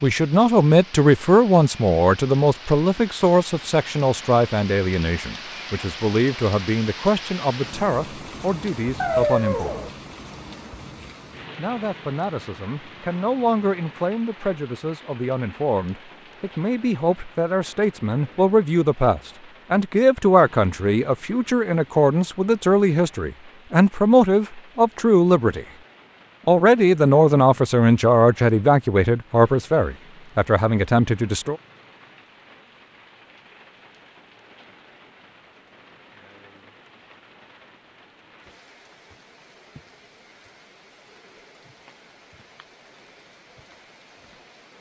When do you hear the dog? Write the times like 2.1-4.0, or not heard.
9.0-9.9.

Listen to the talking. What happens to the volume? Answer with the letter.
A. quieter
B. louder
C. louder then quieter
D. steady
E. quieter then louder
E.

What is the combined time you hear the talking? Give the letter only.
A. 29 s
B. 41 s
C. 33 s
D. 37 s
A.